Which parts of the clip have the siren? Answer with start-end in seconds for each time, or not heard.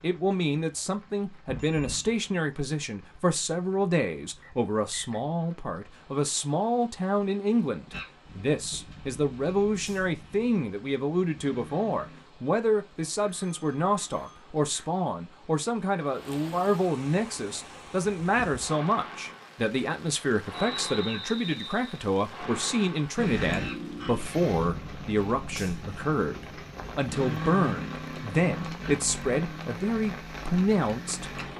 not heard.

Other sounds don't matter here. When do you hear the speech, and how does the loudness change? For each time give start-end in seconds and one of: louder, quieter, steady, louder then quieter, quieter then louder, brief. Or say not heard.
0.0-31.3 steady.